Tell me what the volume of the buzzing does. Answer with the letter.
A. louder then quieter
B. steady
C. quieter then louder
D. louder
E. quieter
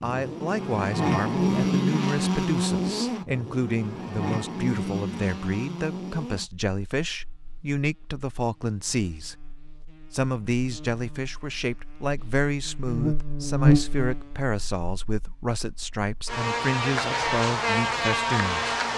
C.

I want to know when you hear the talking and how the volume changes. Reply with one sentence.
The talking can be heard from 0.0 to 9.3 s, at a steady volume; and from 10.1 to 18.7 s, at a steady volume.